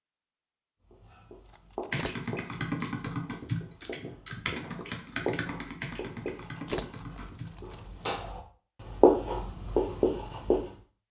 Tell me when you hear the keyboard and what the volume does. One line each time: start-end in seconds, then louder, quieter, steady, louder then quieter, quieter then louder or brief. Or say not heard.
1.9-7.8 quieter.